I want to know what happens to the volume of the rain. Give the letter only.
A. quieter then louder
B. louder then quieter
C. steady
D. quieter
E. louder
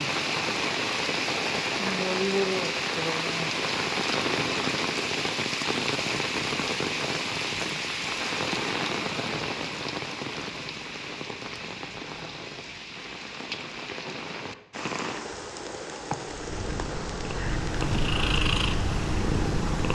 D.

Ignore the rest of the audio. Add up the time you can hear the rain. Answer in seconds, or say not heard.
20 s.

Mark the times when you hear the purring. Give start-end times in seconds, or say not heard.
16.2-19.8.